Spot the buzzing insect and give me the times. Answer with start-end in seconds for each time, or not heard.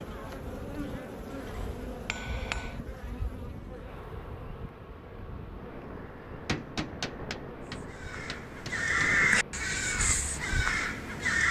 0.0-11.4.